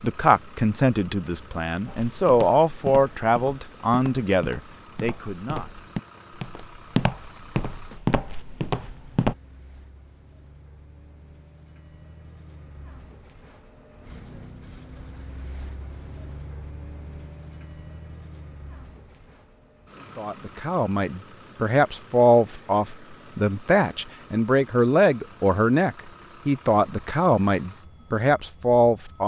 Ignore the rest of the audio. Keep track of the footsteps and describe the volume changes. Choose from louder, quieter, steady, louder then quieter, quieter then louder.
quieter then louder.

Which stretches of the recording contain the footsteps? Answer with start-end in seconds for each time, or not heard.
1.9-9.3.